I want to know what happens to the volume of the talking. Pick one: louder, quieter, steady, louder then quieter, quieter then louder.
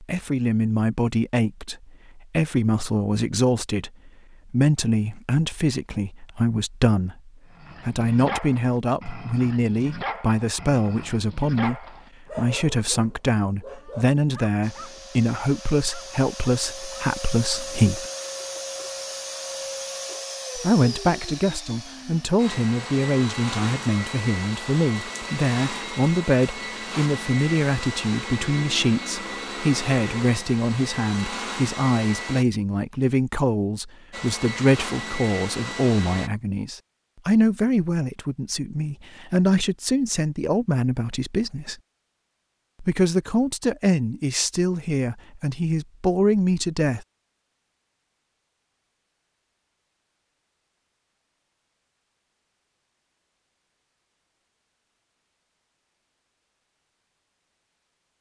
steady.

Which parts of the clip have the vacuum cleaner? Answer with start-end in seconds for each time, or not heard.
14.6-32.5, 34.1-36.3.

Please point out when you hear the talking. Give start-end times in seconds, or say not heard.
0.0-18.1, 20.6-41.8, 42.8-47.0.